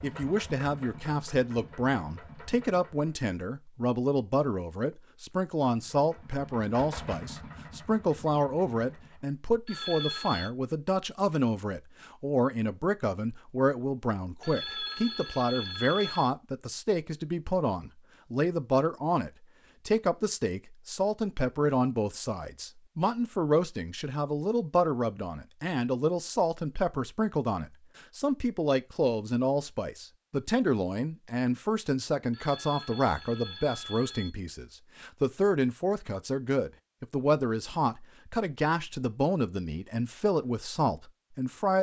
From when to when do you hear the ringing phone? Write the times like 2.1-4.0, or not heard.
9.7-10.5, 14.4-16.3, 32.3-34.3.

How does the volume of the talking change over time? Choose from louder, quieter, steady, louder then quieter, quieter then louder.
steady.